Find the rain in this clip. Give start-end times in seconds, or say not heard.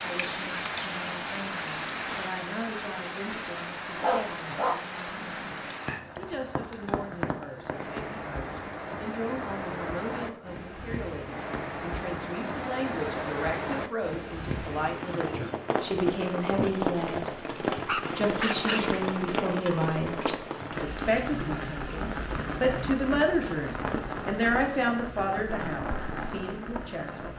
0.0-27.3.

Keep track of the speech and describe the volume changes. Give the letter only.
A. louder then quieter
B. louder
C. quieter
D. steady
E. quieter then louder
B.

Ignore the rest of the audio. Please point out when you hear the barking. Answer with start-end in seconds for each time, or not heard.
4.0-5.7, 17.9-19.0.